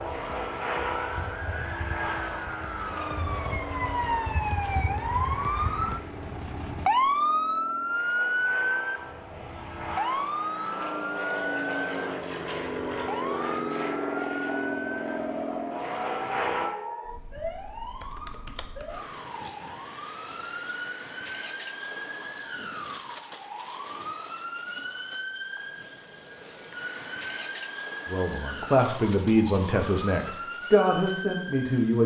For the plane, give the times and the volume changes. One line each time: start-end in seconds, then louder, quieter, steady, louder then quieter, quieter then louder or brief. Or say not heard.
0.0-16.7 quieter then louder.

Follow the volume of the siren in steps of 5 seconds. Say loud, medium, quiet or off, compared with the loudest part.
medium, loud, medium, medium, medium, medium, medium.